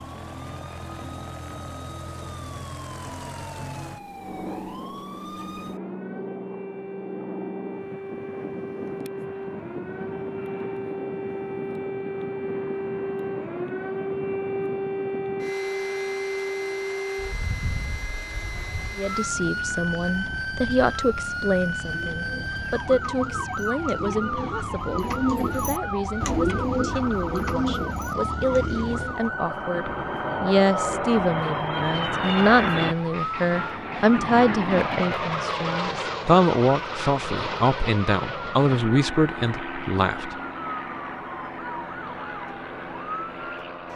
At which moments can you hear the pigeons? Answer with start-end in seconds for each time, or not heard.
21.9-29.3.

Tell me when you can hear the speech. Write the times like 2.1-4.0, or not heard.
18.9-40.4.